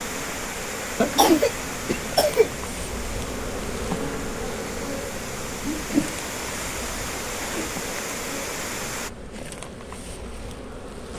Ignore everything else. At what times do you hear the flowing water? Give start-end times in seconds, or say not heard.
0.0-9.1.